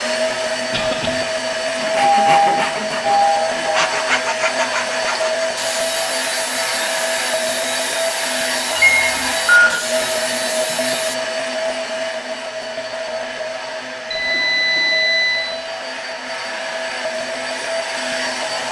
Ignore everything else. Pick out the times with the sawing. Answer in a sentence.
You can hear the sawing from 1.8 to 11.2 s.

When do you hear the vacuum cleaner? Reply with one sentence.
The vacuum cleaner can be heard from 0.0 to 18.6 s.